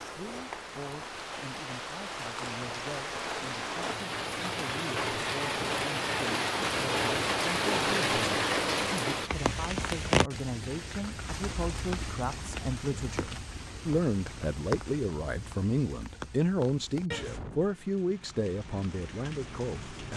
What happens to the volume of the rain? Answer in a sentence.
The volume of the rain goes up, then down.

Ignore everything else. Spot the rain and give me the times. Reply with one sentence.
You can hear the rain from 0.0 to 20.1 s.